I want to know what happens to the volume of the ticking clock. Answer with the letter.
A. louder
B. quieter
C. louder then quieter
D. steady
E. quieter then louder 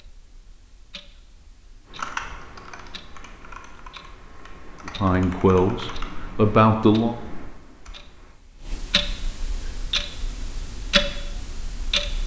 A.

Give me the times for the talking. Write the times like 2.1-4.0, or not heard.
4.8-7.2.